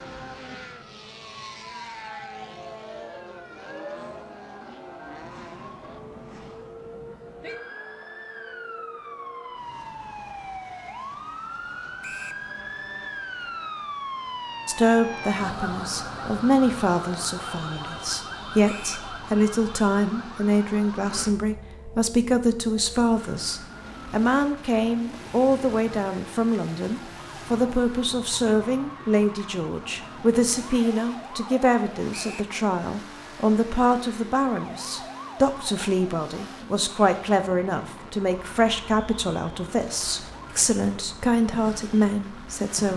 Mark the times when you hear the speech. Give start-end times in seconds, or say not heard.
14.7-42.9.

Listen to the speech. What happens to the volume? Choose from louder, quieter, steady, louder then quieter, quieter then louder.
steady.